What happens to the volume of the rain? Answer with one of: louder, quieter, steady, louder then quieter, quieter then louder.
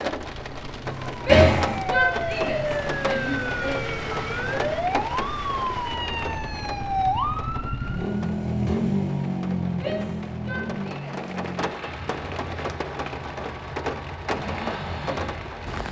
quieter then louder.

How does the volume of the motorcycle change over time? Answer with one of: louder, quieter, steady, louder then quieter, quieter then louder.
louder then quieter.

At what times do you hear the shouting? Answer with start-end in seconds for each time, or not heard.
1.1-3.8, 9.7-11.2.